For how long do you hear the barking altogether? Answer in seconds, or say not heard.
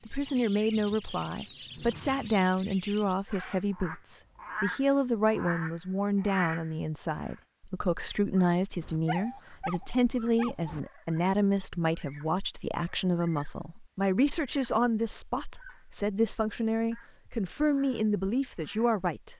2 s.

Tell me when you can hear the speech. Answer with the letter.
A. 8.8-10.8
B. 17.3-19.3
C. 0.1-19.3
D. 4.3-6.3
C.